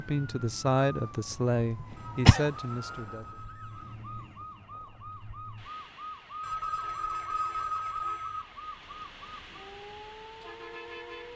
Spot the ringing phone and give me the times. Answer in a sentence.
You can hear the ringing phone from 1.9 to 4.0 s and from 6.4 to 8.4 s.